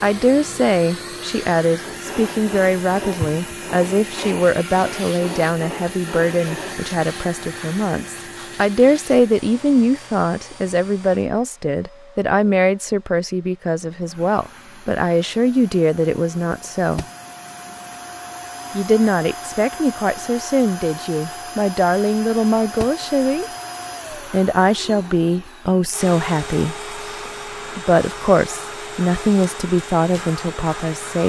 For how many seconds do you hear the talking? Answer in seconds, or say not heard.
28 s.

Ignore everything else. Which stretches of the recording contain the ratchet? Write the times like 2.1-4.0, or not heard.
not heard.